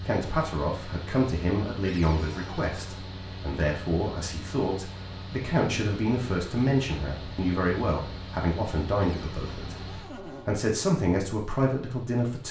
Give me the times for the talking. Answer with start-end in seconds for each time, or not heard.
0.1-9.8, 10.4-12.4.